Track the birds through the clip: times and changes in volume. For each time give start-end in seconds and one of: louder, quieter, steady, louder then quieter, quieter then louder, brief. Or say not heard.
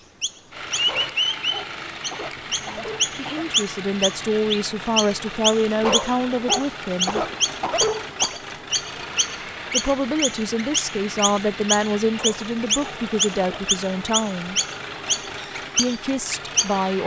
0.2-16.8 steady.